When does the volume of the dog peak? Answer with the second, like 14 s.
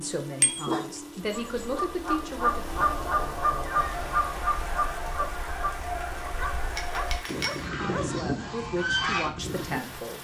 1 s.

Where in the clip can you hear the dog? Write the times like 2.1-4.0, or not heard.
0.6-1.9, 6.2-8.2.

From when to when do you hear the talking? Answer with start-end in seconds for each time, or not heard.
0.0-2.6, 7.7-10.2.